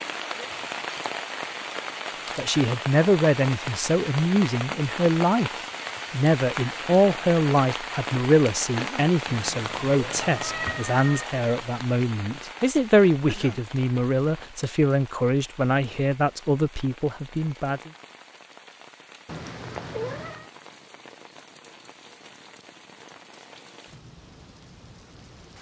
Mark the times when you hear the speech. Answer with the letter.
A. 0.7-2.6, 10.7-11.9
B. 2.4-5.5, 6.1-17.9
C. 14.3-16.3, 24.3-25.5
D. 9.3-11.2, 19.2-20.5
B.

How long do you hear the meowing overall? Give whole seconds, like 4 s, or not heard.
3 s.